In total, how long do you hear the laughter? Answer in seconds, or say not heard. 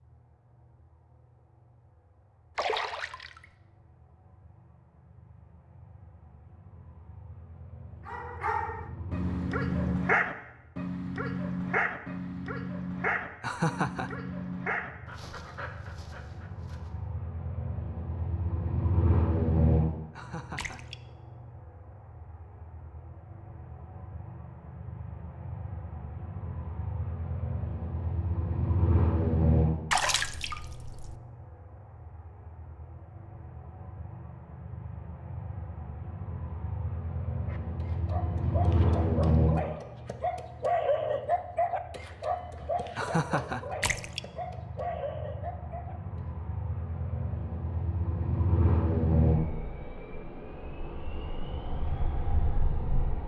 2 s.